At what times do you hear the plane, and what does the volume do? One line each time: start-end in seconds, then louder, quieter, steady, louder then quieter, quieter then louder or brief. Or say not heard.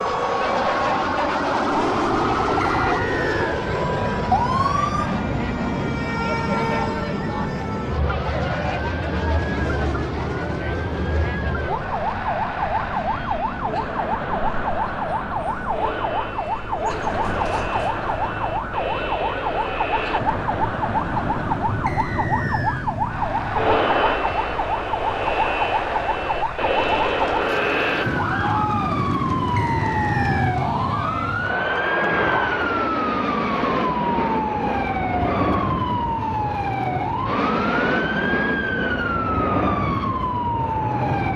0.0-41.3 quieter then louder.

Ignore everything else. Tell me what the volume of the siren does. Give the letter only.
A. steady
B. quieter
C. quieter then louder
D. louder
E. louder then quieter
A.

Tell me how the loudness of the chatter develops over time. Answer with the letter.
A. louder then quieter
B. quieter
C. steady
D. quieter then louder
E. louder
C.